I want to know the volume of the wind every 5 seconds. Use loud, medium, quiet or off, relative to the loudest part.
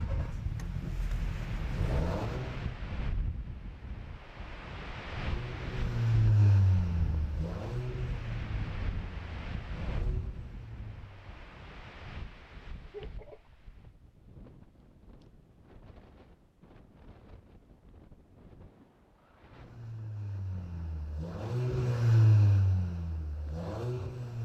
loud, loud, medium, quiet, quiet.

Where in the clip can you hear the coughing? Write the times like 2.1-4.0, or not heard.
12.9-13.7.